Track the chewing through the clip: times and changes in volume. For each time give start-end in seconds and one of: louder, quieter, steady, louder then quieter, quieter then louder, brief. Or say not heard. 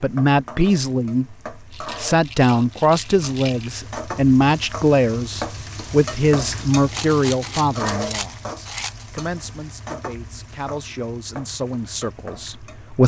not heard.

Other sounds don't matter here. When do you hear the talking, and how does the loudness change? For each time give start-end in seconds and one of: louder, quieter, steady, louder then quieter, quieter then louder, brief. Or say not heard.
0.0-13.0 quieter.